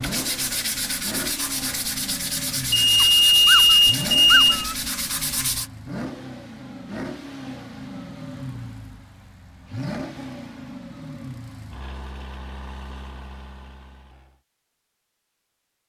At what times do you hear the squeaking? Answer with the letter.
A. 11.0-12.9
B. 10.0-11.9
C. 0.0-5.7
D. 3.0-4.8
D.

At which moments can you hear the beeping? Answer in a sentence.
The beeping can be heard from 2.7 to 4.7 s.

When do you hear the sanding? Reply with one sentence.
You can hear the sanding from 0.0 to 5.7 s.